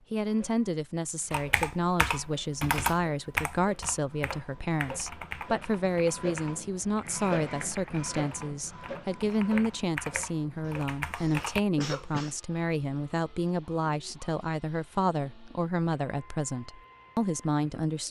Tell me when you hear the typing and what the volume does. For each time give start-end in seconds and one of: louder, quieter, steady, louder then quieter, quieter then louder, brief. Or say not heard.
1.3-11.6 quieter then louder.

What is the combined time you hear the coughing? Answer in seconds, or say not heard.
2 s.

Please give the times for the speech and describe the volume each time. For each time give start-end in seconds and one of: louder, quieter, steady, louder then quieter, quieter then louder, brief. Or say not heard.
0.1-18.0 steady.